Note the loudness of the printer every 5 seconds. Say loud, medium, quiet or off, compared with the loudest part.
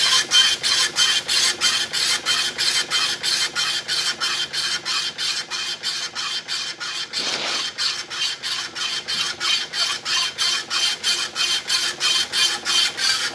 loud, medium, loud.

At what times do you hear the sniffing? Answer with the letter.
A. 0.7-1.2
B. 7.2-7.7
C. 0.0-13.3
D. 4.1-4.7
B.